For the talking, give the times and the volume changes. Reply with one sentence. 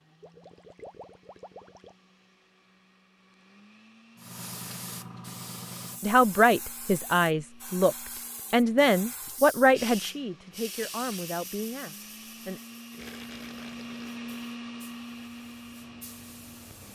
The talking can be heard from 6.0 to 12.6 s, getting quieter.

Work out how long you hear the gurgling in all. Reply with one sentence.
The gurgling can be heard for 3 seconds in total.